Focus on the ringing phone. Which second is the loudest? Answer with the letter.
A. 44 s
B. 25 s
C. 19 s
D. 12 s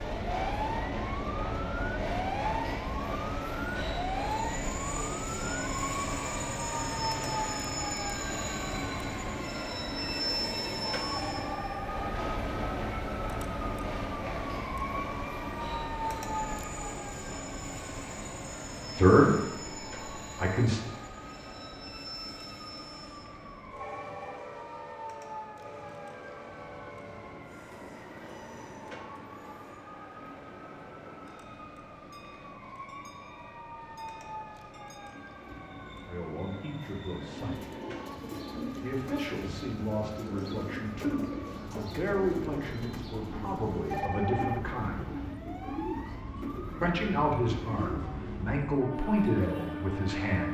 A.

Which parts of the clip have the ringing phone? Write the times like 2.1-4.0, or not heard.
11.2-12.2, 23.8-24.4, 43.9-44.6.